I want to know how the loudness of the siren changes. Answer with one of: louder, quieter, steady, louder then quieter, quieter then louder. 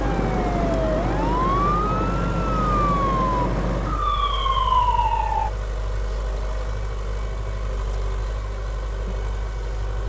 steady.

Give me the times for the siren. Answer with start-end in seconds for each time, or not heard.
0.0-5.5.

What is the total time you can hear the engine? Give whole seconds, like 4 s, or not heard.
10 s.